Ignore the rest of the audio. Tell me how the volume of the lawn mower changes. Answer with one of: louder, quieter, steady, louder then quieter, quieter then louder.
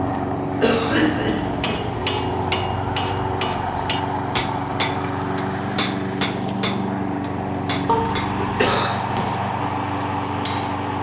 steady.